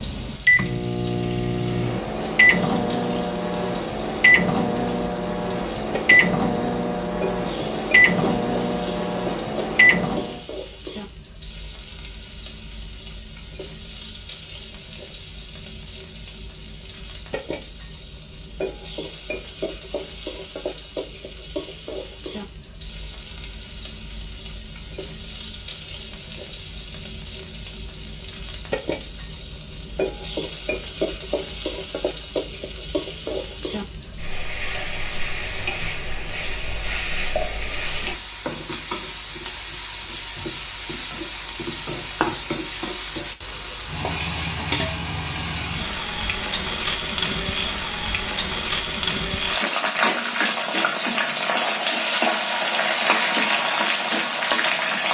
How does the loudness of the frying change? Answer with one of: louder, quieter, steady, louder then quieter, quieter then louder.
louder.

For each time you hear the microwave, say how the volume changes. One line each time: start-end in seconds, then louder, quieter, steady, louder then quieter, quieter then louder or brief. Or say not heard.
0.0-10.4 steady.